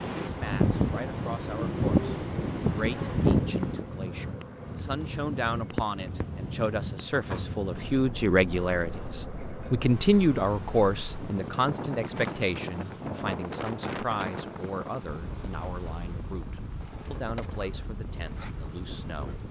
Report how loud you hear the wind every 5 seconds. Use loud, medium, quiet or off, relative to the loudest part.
loud, medium, medium, quiet.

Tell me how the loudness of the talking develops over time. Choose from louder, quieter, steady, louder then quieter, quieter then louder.
louder then quieter.